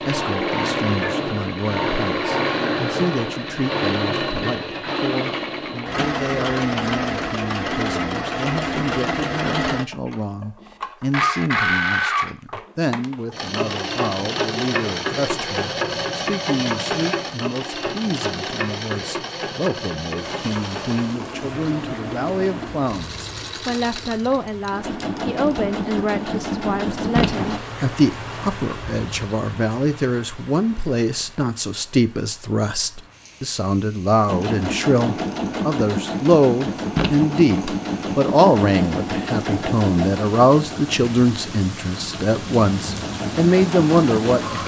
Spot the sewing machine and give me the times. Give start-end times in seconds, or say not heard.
0.0-27.6, 34.2-44.6.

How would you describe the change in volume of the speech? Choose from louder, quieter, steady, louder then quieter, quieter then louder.
louder.